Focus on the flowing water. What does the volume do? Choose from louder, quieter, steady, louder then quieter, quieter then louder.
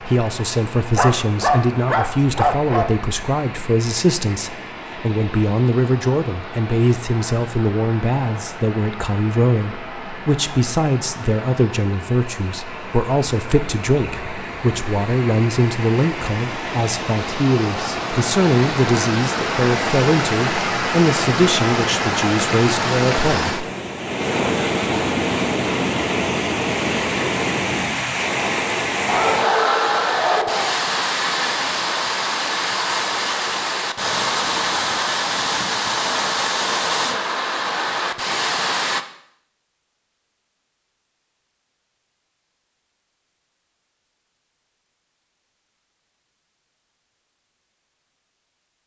louder.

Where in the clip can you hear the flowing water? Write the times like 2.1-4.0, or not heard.
0.0-39.0.